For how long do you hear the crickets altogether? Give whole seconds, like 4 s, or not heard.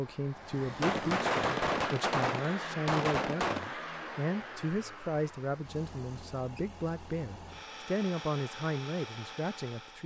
not heard.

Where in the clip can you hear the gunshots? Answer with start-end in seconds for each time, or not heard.
0.6-3.8.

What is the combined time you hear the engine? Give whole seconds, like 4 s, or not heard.
10 s.